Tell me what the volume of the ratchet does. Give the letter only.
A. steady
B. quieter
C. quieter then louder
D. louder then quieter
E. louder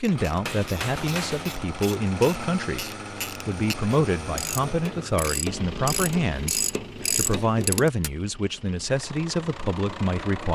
E.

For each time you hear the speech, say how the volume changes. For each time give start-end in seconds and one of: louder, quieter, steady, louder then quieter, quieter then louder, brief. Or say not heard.
0.0-10.5 steady.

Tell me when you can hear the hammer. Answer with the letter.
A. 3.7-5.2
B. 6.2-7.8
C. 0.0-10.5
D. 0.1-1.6
D.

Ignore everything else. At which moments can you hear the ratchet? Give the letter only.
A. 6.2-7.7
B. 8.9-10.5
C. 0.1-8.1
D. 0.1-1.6
C.